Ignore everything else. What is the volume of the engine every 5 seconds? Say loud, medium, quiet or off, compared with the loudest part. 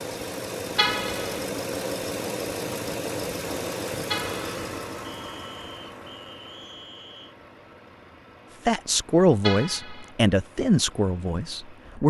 loud, quiet, quiet.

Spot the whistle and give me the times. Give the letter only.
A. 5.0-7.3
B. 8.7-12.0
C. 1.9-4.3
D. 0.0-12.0
A.